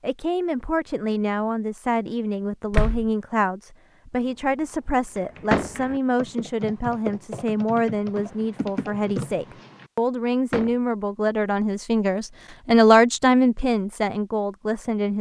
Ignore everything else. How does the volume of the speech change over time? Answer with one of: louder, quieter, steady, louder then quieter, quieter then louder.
louder.